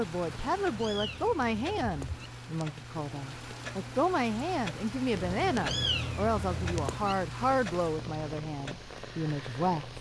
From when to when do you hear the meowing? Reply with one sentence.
The meowing can be heard from 0.2 to 2.3 s and from 5.1 to 7.2 s.